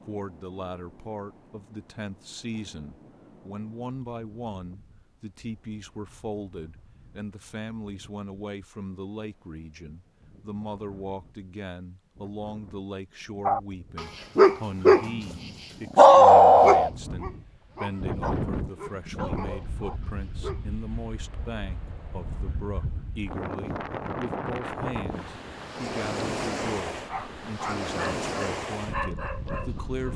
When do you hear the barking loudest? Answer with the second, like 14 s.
16 s.